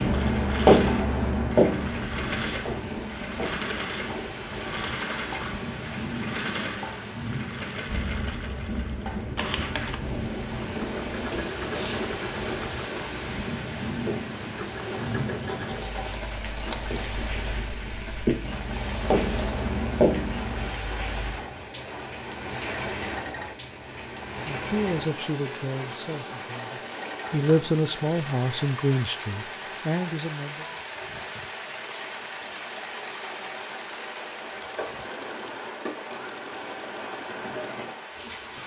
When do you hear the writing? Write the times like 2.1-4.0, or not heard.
0.0-3.6, 14.9-20.7.